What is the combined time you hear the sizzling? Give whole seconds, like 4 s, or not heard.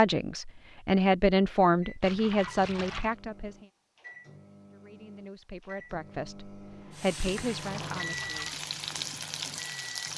3 s.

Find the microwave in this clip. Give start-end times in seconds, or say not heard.
1.7-10.1.